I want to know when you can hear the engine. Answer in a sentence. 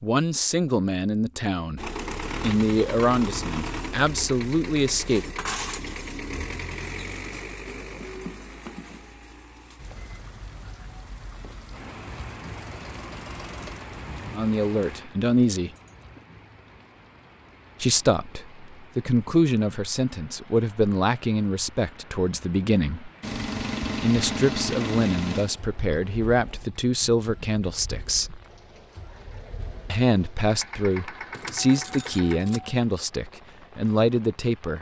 You can hear the engine from 1.8 to 14.4 s and from 23.2 to 32.4 s.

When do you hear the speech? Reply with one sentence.
You can hear the speech from 0.0 to 5.2 s, from 14.3 to 15.7 s, from 17.8 to 23.1 s, from 24.0 to 28.4 s and from 29.9 to 34.7 s.